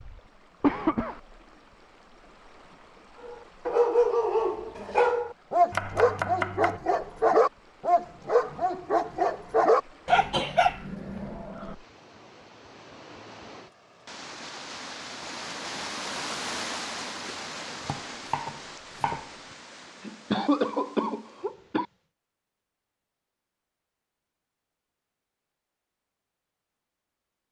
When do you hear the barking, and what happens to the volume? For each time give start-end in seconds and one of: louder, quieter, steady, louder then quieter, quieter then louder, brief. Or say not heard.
3.2-11.2 steady.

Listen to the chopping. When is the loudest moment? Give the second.
6 s.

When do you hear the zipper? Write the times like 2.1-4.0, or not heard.
not heard.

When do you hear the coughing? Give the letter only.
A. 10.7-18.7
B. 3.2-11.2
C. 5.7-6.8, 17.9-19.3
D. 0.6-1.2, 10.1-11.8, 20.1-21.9
D.